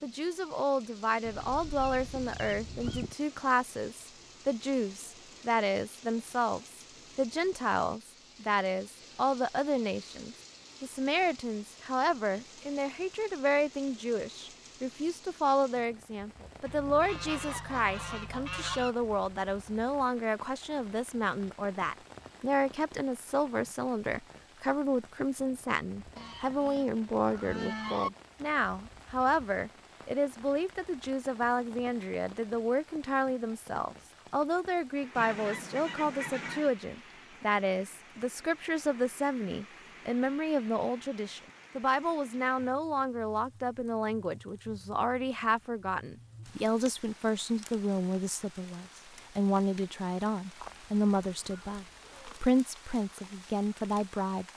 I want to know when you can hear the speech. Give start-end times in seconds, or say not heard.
0.0-54.5.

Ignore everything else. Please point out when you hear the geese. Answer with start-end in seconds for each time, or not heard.
1.2-3.1, 16.6-18.9, 26.1-28.1, 35.1-36.8, 50.6-52.4.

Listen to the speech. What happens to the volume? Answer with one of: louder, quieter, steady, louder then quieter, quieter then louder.
steady.